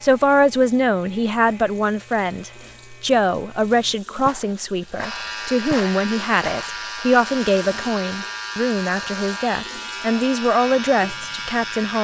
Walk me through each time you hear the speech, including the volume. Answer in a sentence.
You can hear the speech from 0.0 to 12.0 s, at a steady volume.